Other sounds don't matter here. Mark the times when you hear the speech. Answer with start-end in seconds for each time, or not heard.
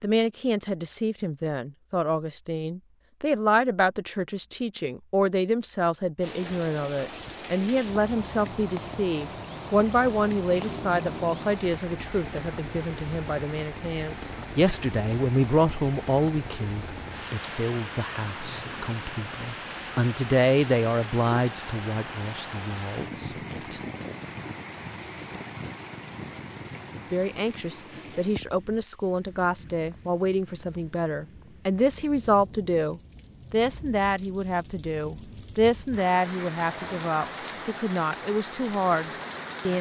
0.0-23.8, 27.1-39.7.